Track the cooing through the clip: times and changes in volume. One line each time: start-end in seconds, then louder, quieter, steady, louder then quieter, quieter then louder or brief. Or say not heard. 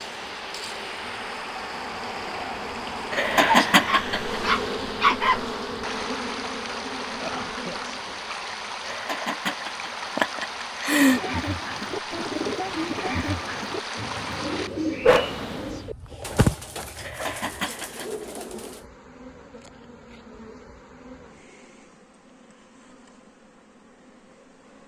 11.1-18.9 quieter.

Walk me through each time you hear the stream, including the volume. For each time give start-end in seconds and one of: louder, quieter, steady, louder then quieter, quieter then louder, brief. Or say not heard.
0.0-15.9 steady.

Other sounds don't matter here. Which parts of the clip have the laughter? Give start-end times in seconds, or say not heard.
3.1-4.4, 8.8-11.2, 16.9-18.2.